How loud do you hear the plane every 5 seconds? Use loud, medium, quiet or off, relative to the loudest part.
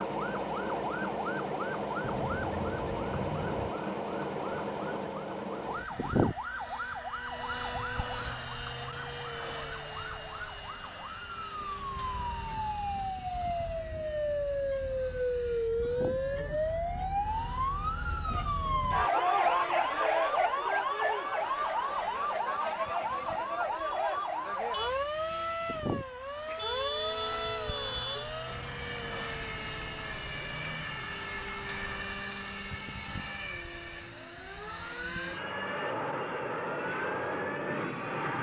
loud, loud, quiet, quiet, quiet, medium, medium, loud.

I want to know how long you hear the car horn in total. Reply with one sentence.
You can hear the car horn for 4 seconds altogether.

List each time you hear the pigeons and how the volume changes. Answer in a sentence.
You can't hear the pigeons here.